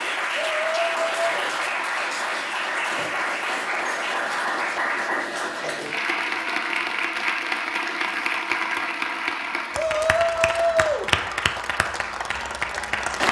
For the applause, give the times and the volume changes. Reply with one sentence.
You can hear the applause from 0.0 to 13.2 s, at a steady volume.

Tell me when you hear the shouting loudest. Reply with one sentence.
The loudest moment of the shouting is at 11 seconds.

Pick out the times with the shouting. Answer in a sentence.
You can hear the shouting from 0.5 to 1.2 s and from 9.7 to 11.1 s.